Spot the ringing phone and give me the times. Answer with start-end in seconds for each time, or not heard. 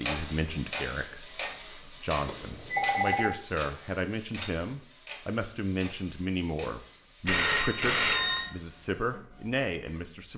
2.2-3.4, 7.2-8.6.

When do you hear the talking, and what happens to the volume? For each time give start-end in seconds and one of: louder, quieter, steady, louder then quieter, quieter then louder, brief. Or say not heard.
0.0-10.3 steady.